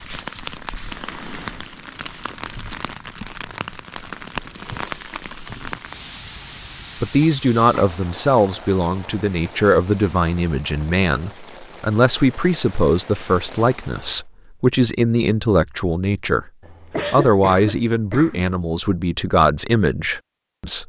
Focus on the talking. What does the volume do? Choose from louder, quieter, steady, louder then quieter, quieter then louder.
steady.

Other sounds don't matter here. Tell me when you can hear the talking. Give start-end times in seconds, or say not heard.
7.0-16.5, 17.1-20.8.